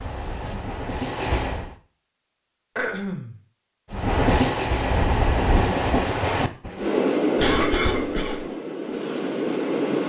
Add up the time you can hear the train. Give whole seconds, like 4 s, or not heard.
8 s.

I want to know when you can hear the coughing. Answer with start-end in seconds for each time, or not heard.
2.8-3.4, 7.3-8.5.